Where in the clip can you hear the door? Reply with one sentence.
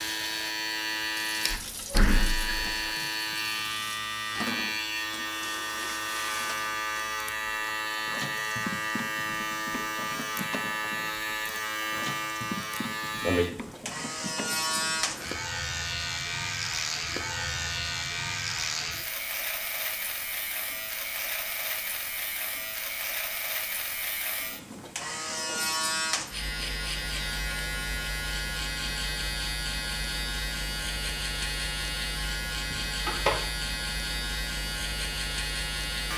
You can hear the door from 1.6 to 3.0 s and from 32.7 to 33.3 s.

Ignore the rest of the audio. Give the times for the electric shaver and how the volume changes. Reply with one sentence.
You can hear the electric shaver from 0.0 to 36.1 s, at a steady volume.